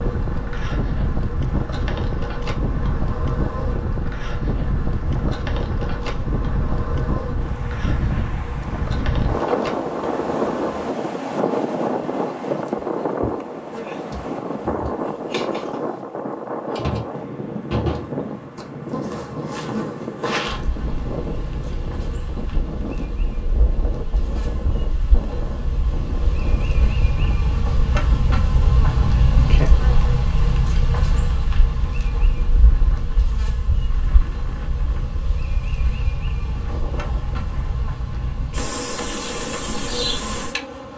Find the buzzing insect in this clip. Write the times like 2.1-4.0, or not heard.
0.0-40.9.